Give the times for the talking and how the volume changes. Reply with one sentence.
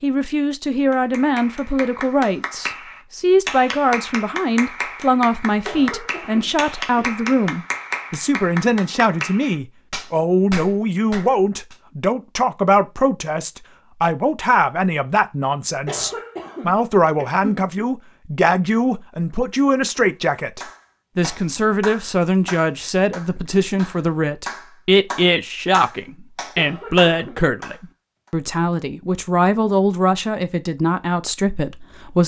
You can hear the talking from 0.0 to 32.2 s, at a steady volume.